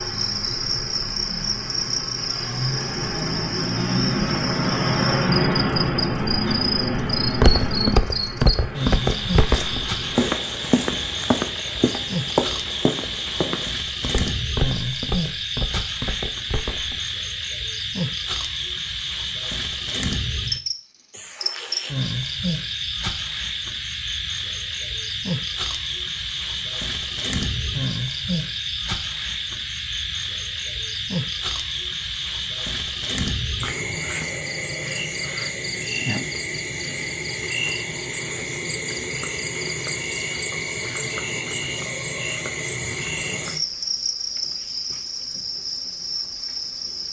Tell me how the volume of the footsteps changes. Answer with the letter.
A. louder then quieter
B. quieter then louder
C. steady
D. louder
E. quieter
E.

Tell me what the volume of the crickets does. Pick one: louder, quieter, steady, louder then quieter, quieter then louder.
steady.